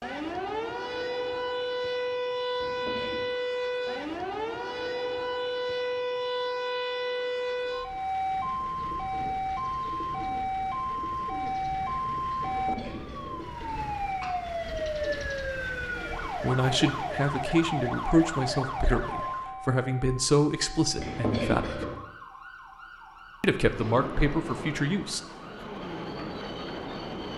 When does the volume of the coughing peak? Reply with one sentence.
The loudest moment of the coughing is at 21 seconds.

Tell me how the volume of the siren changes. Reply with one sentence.
The volume of the siren goes down.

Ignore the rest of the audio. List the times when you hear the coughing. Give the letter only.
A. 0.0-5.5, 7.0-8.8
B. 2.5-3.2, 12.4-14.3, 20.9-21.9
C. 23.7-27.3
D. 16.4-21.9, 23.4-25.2
B.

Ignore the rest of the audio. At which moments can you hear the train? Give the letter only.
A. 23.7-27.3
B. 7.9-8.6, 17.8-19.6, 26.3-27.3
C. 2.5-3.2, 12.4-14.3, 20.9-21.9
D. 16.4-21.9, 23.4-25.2
A.